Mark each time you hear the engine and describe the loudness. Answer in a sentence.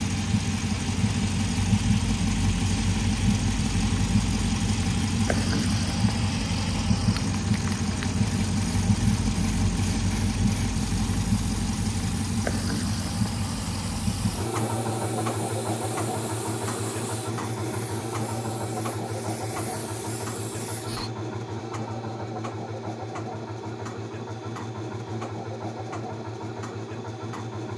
The engine can be heard from 0.0 to 27.7 s, getting quieter.